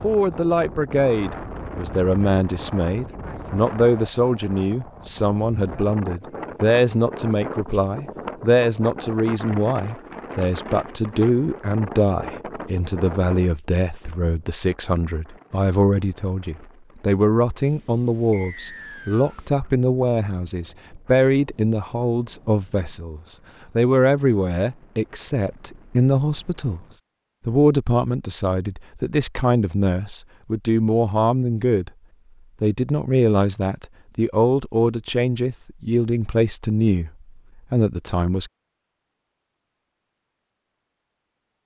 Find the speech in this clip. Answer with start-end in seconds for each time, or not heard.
0.0-26.8, 27.4-31.9, 32.6-37.1, 37.7-38.5.